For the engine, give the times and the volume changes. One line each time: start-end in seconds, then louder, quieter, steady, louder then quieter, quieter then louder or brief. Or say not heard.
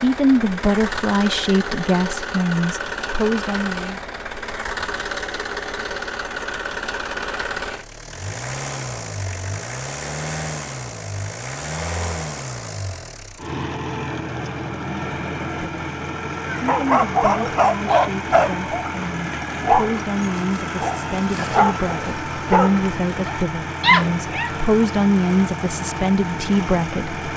0.0-27.3 steady.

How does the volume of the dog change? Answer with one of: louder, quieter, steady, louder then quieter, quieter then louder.
quieter then louder.